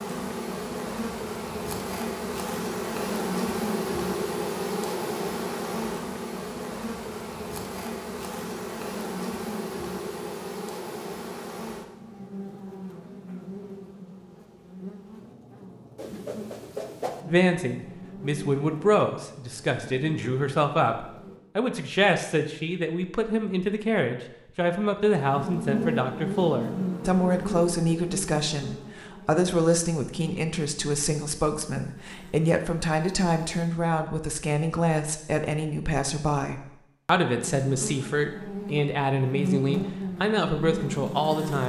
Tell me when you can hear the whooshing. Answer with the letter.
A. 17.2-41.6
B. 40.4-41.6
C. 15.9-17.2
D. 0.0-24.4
C.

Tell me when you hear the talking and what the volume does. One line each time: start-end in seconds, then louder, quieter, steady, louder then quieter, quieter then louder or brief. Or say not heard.
17.2-41.6 steady.